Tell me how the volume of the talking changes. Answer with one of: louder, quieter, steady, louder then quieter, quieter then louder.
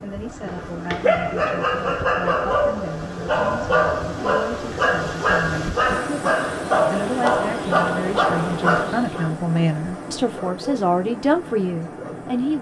louder.